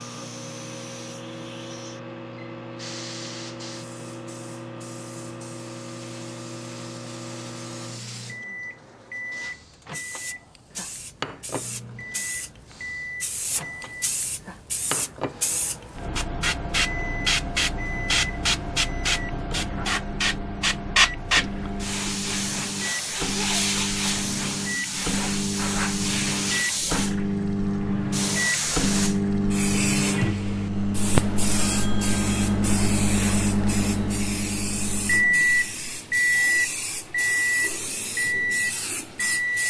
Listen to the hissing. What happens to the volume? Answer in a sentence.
The loudness of the hissing goes up, then down.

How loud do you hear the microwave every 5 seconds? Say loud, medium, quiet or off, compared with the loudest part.
quiet, quiet, quiet, quiet, medium, loud, loud, loud.